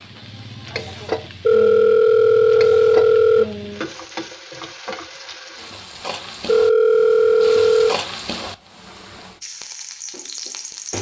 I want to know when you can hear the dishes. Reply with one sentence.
You can't hear the dishes here.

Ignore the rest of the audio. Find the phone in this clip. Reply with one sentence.
You can hear the phone from 1.4 to 3.5 s and from 6.5 to 8.0 s.